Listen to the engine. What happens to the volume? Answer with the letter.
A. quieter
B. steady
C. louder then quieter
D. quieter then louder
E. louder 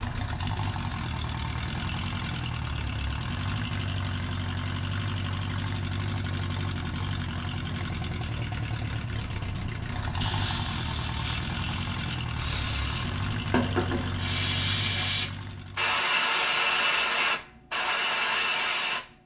B.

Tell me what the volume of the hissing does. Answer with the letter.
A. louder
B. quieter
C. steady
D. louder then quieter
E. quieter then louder
A.